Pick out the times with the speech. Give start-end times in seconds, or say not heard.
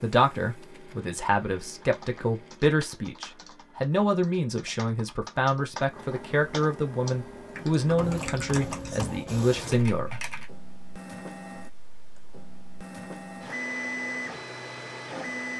0.0-10.2.